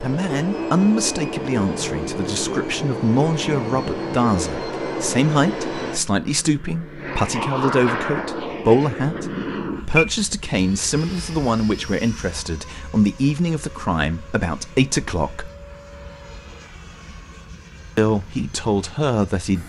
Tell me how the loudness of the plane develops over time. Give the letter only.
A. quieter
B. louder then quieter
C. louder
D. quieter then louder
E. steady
A.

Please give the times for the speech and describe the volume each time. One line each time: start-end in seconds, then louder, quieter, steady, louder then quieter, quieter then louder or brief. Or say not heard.
0.0-15.5 steady
17.9-19.6 brief.